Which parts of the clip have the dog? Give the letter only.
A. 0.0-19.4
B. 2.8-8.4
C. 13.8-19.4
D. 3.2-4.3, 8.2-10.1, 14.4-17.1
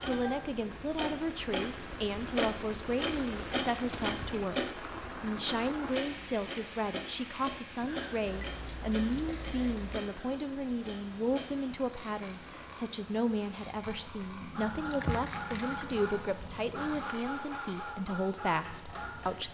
C.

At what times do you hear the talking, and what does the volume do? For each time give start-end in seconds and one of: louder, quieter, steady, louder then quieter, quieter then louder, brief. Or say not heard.
0.0-19.4 steady.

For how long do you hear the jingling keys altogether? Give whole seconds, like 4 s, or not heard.
6 s.